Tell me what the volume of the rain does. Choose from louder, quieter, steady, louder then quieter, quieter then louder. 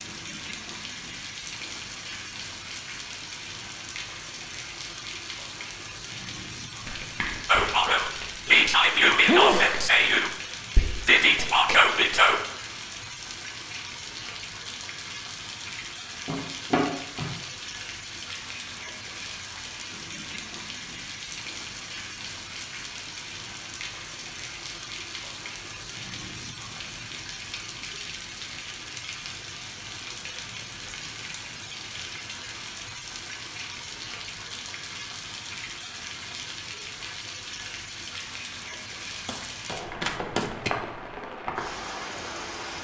steady.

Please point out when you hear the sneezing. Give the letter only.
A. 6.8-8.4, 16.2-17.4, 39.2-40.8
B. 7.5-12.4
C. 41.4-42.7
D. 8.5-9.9
D.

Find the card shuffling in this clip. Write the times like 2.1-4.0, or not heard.
6.8-8.4, 16.2-17.4, 39.2-40.8.